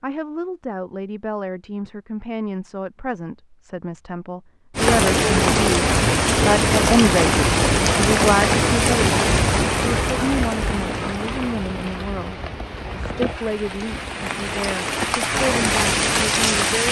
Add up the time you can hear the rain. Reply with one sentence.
The rain can be heard for 12 seconds in total.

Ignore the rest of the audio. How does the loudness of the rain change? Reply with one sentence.
The loudness of the rain goes down, then up.